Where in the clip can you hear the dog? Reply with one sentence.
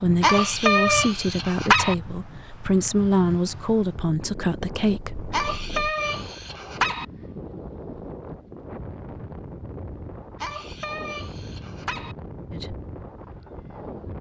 The dog can be heard from 0.2 to 1.9 s, from 5.3 to 7.0 s and from 10.4 to 12.2 s.